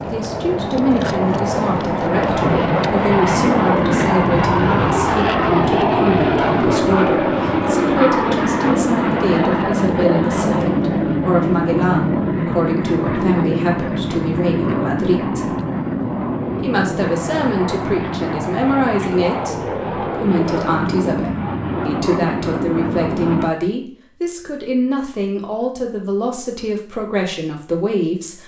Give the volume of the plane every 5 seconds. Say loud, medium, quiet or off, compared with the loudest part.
loud, loud, loud, medium, medium, off.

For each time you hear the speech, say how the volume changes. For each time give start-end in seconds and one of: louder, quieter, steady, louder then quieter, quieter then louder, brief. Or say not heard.
0.1-15.5 steady
16.6-28.4 steady.